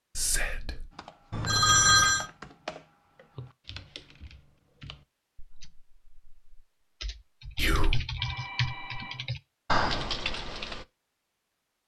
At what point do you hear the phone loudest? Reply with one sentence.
The volume of the phone peaks at 2 seconds.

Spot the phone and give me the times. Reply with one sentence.
The phone can be heard from 1.3 to 2.2 s and from 8.2 to 9.3 s.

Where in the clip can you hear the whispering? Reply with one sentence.
You can hear the whispering from 0.1 to 0.8 s and from 7.5 to 8.0 s.